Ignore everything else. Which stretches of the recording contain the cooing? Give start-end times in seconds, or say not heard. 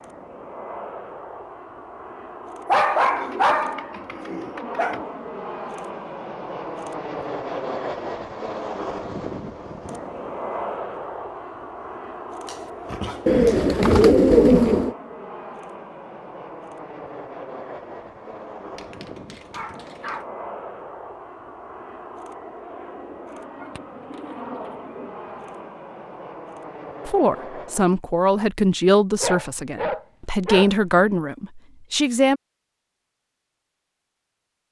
3.0-5.0, 13.2-14.9, 23.6-25.6.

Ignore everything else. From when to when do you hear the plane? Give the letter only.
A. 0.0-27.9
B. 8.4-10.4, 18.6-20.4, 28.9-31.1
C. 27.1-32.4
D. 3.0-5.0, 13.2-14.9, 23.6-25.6
A.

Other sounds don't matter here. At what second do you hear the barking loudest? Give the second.
3 s.